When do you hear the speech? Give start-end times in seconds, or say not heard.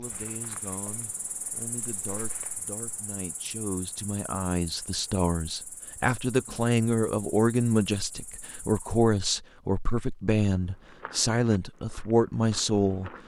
0.0-13.1.